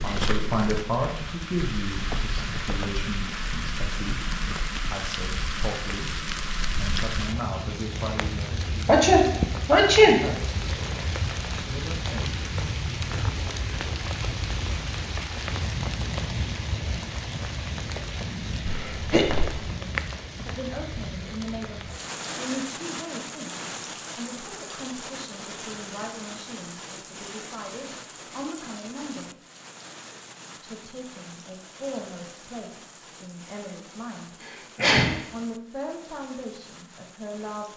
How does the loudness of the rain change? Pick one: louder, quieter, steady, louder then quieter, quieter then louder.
quieter.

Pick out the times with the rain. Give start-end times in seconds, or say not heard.
0.0-37.7.